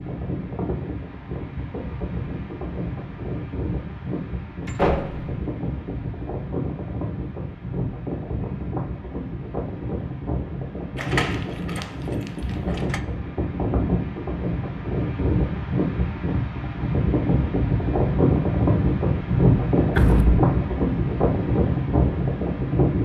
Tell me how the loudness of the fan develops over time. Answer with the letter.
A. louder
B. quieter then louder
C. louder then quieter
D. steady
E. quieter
A.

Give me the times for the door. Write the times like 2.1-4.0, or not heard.
4.7-5.3, 10.9-13.0, 19.9-20.4.